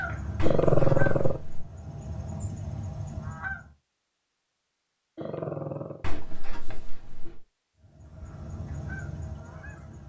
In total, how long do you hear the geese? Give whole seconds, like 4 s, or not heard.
6 s.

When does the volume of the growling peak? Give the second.
1 s.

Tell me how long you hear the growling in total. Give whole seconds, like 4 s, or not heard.
2 s.